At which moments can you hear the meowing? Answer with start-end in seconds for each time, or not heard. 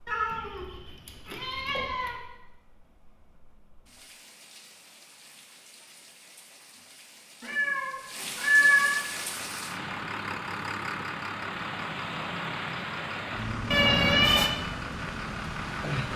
0.1-2.1, 7.4-9.0, 13.7-14.5.